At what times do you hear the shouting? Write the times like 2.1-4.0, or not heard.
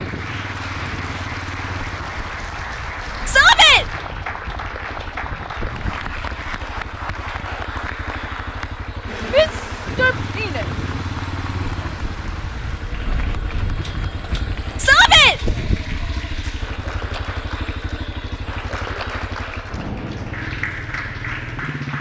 3.2-3.9, 9.3-10.7, 14.8-15.3.